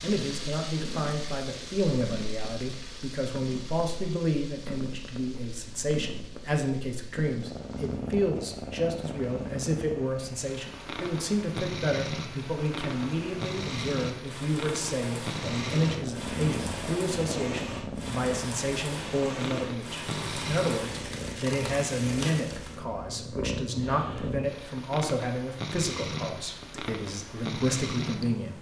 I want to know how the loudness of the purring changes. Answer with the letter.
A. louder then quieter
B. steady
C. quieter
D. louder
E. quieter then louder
D.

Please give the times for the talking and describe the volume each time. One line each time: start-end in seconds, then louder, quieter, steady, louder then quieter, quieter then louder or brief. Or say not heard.
0.0-28.5 steady.